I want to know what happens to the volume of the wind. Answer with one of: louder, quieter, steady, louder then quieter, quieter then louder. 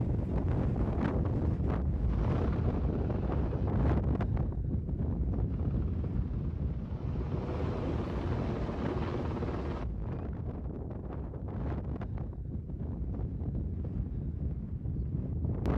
quieter.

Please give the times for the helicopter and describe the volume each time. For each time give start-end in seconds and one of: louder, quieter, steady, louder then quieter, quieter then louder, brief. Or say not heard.
2.0-3.7 brief
5.5-9.8 louder.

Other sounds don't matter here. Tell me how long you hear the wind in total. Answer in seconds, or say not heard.
16 s.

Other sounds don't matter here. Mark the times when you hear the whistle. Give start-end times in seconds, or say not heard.
not heard.